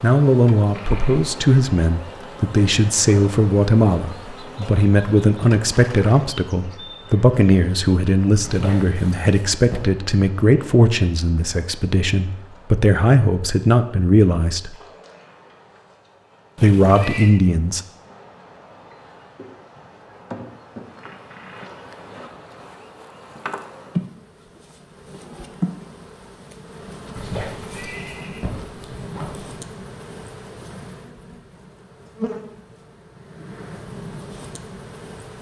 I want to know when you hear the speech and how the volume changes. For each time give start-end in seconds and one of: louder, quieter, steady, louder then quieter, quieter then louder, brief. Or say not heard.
0.0-14.7 steady
16.6-17.8 brief.